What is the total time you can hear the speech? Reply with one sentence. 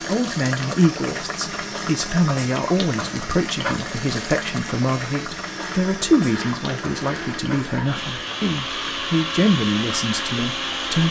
The speech can be heard for 11 seconds in total.